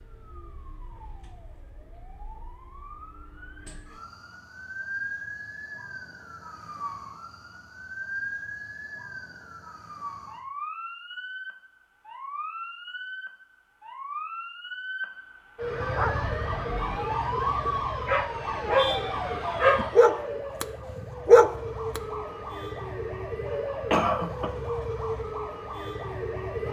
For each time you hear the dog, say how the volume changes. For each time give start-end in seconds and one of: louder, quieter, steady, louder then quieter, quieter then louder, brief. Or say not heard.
15.9-20.6 louder
21.2-22.0 brief.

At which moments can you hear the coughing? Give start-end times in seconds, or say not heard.
23.9-24.6.